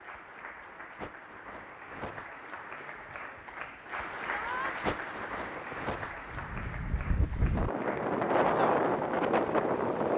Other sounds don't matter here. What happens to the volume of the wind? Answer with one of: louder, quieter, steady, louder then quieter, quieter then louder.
louder.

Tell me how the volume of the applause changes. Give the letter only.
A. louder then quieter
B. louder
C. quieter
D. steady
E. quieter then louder
A.